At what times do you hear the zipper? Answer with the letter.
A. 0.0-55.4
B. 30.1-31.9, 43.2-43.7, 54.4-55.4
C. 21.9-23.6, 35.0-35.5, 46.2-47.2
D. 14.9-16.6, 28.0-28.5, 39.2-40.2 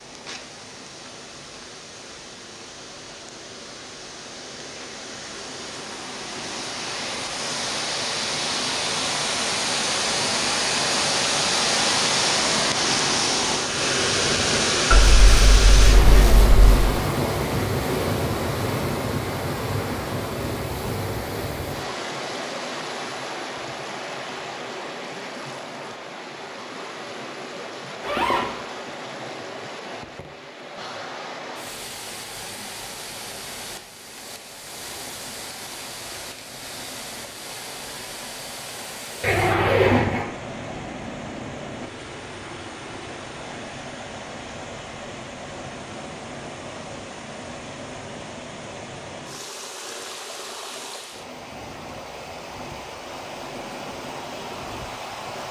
D.